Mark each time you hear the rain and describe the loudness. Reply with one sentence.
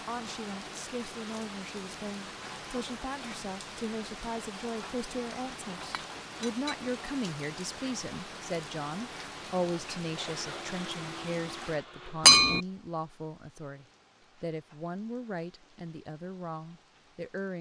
The rain can be heard from 0.0 to 17.5 s, getting quieter.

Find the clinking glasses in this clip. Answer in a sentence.
You can hear the clinking glasses from 5.8 to 6.8 s and from 12.2 to 12.6 s.